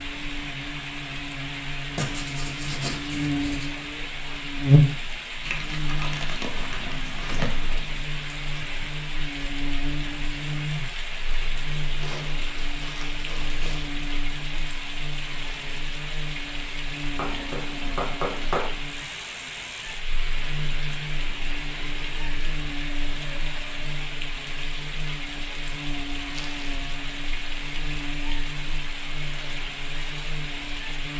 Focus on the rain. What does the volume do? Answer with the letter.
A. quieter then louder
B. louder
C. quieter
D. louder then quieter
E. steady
E.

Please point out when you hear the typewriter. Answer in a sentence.
You can't hear the typewriter here.